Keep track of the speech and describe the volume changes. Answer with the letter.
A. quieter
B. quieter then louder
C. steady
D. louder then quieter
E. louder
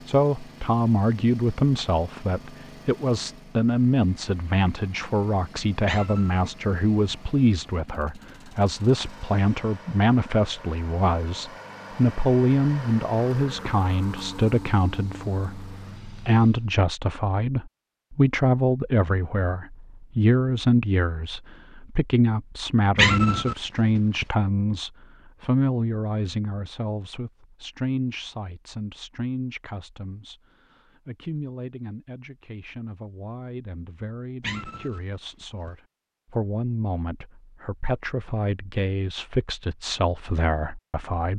A.